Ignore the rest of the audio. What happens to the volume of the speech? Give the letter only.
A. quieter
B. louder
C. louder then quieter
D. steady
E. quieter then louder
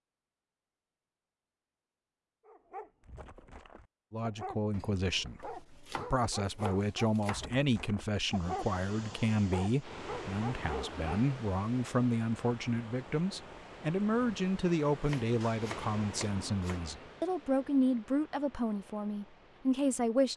D.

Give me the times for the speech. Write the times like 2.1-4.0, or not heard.
4.1-20.3.